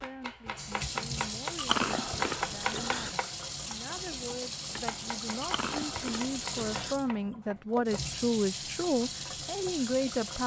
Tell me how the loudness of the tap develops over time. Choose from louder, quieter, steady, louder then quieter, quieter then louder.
steady.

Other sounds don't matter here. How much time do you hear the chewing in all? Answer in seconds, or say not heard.
3 s.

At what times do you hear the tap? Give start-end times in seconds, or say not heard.
0.0-10.4.